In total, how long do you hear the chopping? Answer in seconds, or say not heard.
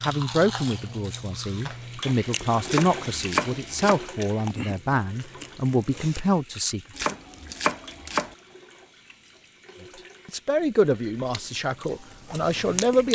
3 s.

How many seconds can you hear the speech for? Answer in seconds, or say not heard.
10 s.